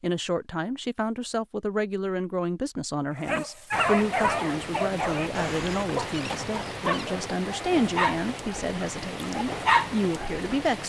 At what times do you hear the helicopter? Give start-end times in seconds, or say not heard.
not heard.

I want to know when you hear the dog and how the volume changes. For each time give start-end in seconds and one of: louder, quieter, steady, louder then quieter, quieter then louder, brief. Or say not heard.
3.2-10.3 quieter then louder.